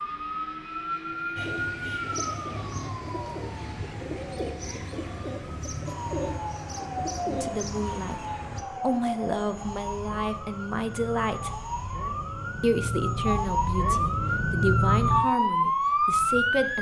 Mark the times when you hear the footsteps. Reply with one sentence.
The footsteps can't be heard in this clip.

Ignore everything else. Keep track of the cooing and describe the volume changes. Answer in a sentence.
The volume of the cooing stays about the same.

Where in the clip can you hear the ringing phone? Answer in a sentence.
You can't hear the ringing phone here.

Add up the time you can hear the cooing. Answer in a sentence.
You can hear the cooing for 7 seconds altogether.